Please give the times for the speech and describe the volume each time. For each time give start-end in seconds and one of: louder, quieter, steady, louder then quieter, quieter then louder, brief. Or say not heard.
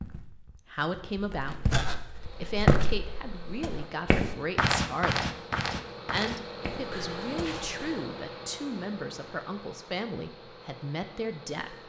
0.0-1.8 brief
2.4-5.3 brief
6.0-11.8 steady.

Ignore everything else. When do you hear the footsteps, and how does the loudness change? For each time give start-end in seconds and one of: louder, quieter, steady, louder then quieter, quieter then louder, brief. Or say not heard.
0.0-8.1 louder then quieter.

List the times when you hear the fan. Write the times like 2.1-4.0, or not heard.
2.0-11.8.